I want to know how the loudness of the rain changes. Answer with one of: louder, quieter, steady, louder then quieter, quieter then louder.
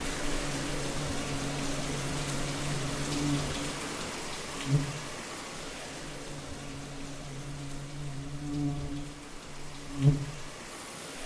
quieter.